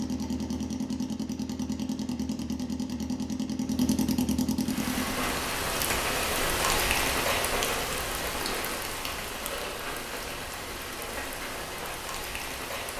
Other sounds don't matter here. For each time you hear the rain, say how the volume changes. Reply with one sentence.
The rain can be heard from 4.6 to 12.9 s, getting quieter.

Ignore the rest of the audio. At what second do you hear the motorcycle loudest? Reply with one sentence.
The loudest moment of the motorcycle is at 4 seconds.